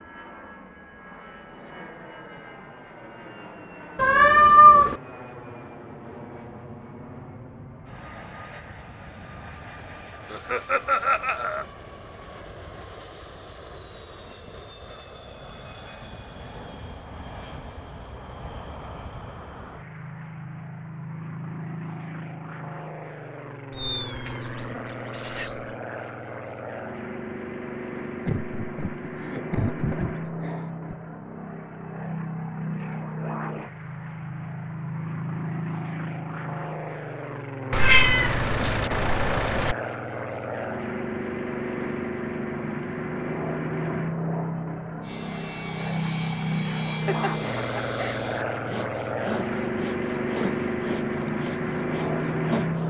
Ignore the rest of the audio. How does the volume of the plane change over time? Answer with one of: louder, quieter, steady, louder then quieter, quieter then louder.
louder.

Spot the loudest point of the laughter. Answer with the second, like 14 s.
11 s.